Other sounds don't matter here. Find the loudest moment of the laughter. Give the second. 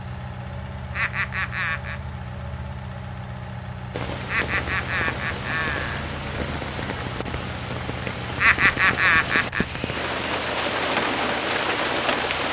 9 s.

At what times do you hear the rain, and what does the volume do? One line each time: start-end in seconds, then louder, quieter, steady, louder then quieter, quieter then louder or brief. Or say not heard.
3.9-12.4 louder.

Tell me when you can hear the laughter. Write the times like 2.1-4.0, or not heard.
0.9-2.0, 4.2-6.0, 8.3-9.7.